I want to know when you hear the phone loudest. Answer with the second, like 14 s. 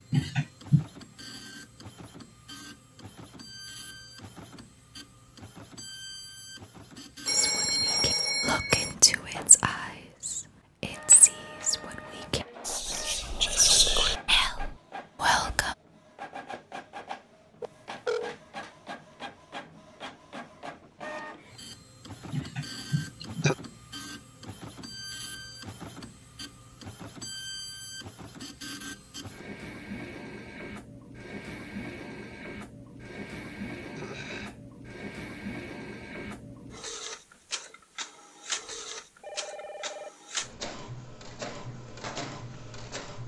8 s.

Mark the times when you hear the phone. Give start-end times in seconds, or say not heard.
7.2-8.9, 17.6-18.4, 39.2-40.1.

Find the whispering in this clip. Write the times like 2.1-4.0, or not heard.
7.3-15.8.